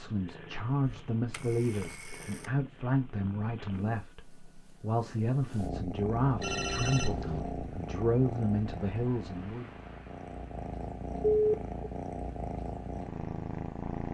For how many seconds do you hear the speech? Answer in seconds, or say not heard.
10 s.